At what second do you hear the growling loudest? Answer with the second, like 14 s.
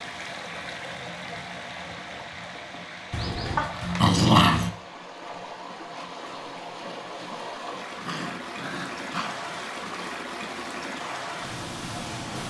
4 s.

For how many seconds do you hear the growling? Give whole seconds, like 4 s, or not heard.
3 s.